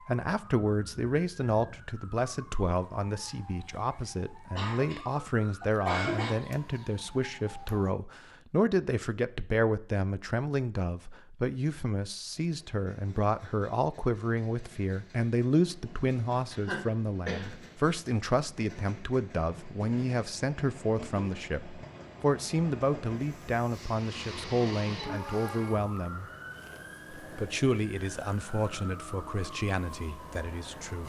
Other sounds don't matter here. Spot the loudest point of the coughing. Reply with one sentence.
The volume of the coughing peaks at 6 seconds.